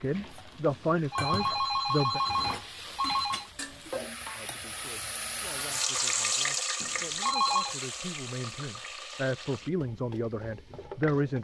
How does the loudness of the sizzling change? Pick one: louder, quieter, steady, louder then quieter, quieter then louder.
louder then quieter.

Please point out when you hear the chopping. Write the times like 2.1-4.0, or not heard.
not heard.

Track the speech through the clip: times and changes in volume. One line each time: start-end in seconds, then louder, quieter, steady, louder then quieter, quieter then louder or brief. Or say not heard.
0.0-2.2 brief
4.3-11.3 louder.